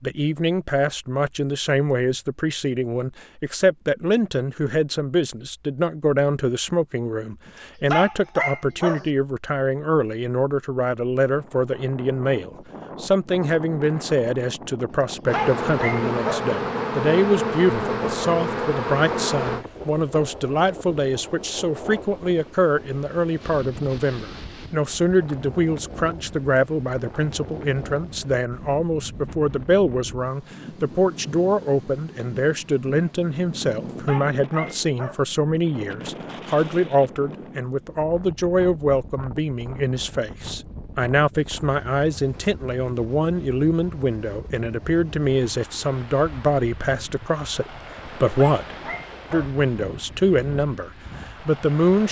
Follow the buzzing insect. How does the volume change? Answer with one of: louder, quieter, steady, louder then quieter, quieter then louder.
steady.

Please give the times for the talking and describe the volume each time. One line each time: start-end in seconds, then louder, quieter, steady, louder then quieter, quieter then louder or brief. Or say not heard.
0.0-52.0 steady.